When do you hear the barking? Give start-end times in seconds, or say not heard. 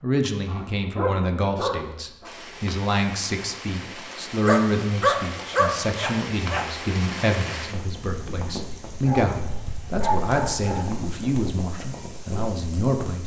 0.5-2.3, 4.5-6.7, 9.0-10.9.